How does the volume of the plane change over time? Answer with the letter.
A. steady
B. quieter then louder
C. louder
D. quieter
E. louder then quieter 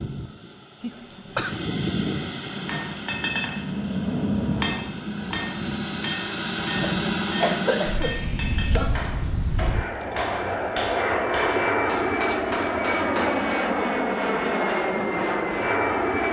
C.